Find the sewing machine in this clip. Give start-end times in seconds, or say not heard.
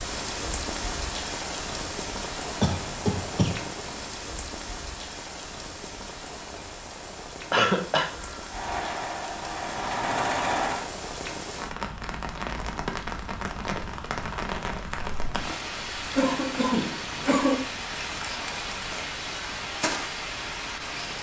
8.4-10.9.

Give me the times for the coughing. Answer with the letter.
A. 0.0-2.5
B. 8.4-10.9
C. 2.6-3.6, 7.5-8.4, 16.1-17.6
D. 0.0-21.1
C.